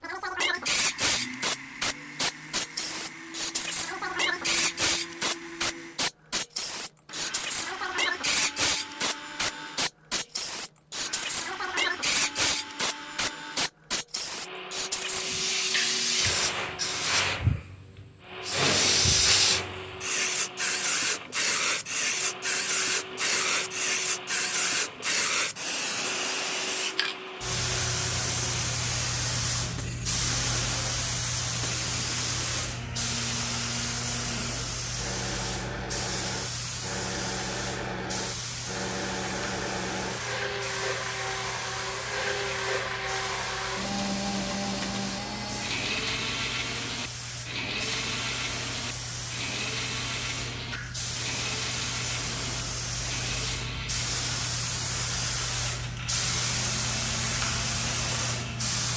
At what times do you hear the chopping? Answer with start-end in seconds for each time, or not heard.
not heard.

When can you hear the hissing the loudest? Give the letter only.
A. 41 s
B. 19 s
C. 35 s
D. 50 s
B.